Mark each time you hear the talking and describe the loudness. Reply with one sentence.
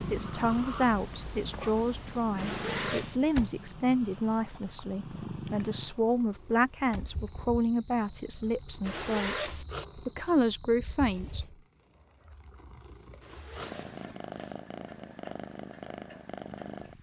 You can hear the talking from 0.0 to 11.4 s, at a steady volume.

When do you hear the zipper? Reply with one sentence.
The zipper can be heard from 2.4 to 3.2 s, from 8.8 to 9.7 s and from 13.2 to 14.0 s.